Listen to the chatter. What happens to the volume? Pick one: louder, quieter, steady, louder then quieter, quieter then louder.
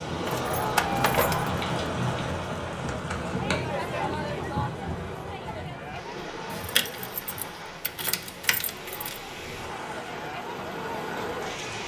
quieter then louder.